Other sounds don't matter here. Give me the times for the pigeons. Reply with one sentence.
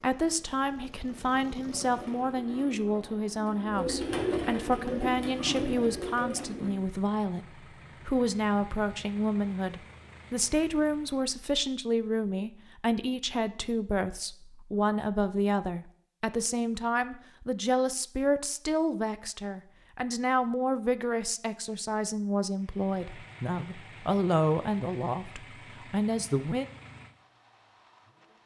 The pigeons can be heard from 1.6 to 6.8 s.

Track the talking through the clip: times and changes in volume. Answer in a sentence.
The talking can be heard from 0.0 to 26.7 s, at a steady volume.